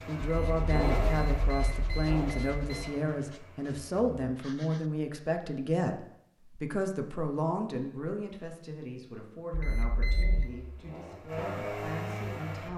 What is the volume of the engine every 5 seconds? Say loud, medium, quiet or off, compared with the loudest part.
loud, off, loud.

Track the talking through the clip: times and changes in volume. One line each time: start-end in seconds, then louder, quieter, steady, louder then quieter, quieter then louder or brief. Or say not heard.
0.1-12.7 quieter.